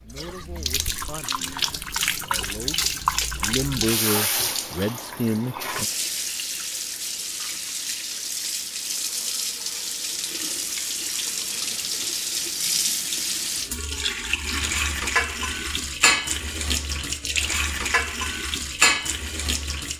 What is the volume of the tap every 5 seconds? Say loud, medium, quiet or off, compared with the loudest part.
loud, medium, loud, loud.